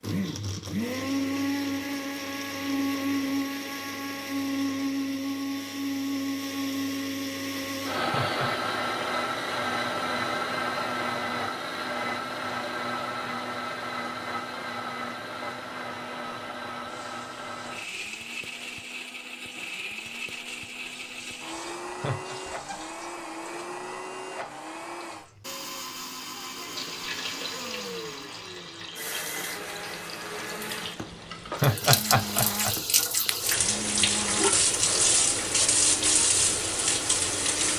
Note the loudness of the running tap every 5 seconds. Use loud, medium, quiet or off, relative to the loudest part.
off, off, off, quiet, quiet, quiet, loud, loud.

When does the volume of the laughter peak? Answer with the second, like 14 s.
32 s.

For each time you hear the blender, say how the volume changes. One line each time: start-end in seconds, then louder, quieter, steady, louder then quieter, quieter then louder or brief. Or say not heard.
0.0-37.7 quieter.